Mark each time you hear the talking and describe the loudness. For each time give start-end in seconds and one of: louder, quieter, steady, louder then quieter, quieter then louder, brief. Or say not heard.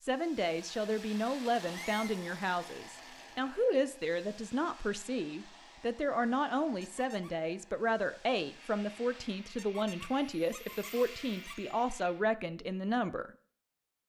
0.0-13.3 steady.